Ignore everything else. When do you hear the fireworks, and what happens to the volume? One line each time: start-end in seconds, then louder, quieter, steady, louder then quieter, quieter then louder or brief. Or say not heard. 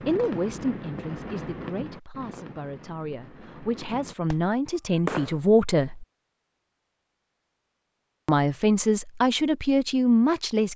0.0-5.4 quieter.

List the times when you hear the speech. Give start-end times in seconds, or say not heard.
0.1-6.0, 8.2-10.7.